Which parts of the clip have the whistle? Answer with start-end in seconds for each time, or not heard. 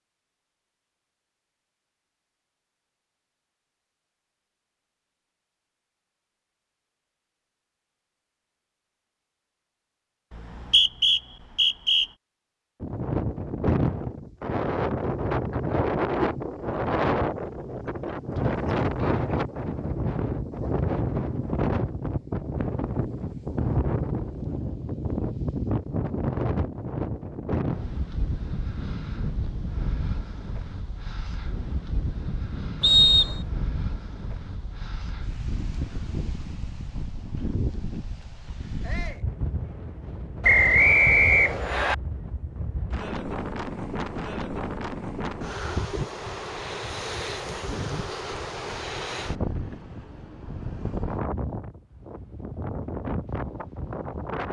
10.3-12.1, 32.8-33.4, 40.4-42.0.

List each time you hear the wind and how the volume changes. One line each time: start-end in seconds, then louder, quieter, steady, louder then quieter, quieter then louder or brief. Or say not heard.
12.8-54.4 quieter.